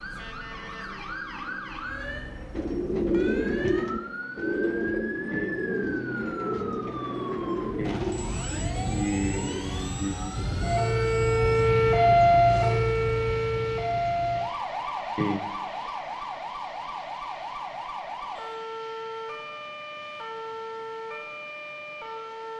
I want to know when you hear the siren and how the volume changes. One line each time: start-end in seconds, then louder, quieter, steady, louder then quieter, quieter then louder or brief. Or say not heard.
0.0-22.5 louder then quieter.